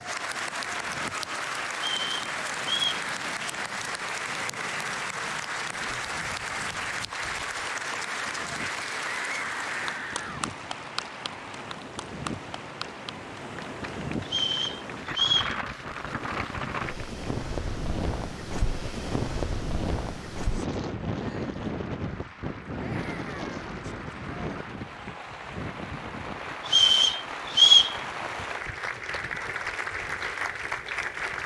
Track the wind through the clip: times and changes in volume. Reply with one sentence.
The wind can be heard from 0.0 to 31.4 s, getting louder then quieter.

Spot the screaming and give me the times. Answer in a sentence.
You can hear the screaming from 9.1 to 10.4 s and from 22.8 to 23.6 s.